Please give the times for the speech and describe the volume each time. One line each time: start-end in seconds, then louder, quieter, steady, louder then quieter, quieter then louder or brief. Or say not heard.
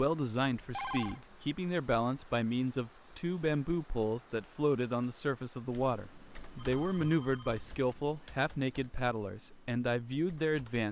0.0-10.8 steady.